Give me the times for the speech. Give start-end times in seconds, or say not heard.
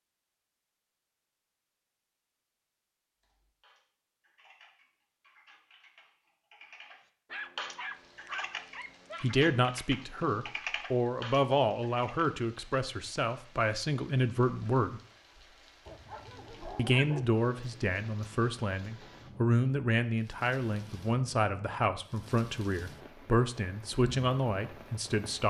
9.2-15.0, 16.8-25.4.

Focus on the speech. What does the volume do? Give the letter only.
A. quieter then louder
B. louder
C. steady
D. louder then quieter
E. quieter
C.